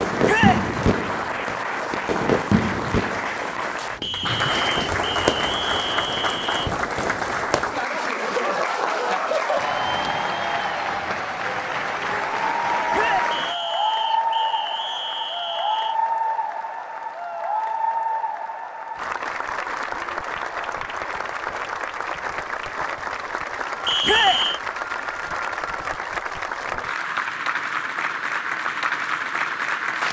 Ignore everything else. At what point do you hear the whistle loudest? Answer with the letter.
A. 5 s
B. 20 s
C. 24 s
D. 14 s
C.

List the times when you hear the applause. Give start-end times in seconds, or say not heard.
0.0-30.0.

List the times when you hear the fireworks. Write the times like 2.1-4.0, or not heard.
0.0-7.7.